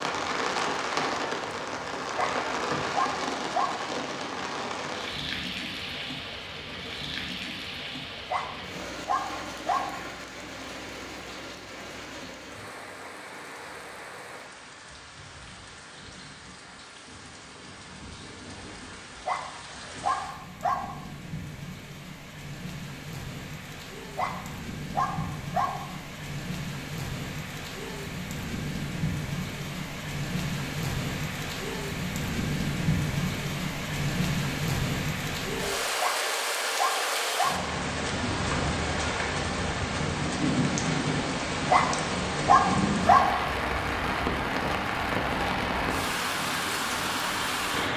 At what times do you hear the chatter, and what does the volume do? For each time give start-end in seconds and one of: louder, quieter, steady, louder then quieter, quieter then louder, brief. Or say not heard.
not heard.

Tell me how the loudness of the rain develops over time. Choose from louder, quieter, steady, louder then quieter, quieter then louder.
quieter then louder.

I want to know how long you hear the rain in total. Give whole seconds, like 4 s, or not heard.
48 s.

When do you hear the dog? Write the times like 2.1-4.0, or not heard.
2.1-4.0, 8.3-10.1, 19.2-21.1, 24.1-26.0, 36.0-37.7, 41.7-43.5.